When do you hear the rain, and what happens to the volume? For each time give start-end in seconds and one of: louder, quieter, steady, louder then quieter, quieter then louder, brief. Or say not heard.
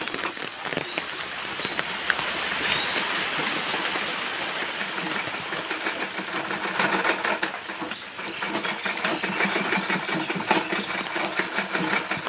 0.0-12.2 quieter.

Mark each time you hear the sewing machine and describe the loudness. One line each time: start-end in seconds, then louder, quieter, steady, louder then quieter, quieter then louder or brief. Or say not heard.
0.0-12.2 louder.